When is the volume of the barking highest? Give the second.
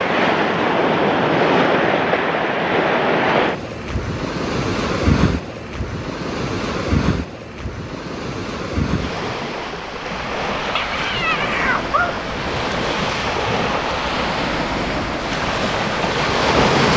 12 s.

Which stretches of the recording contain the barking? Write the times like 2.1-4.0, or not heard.
10.6-12.2.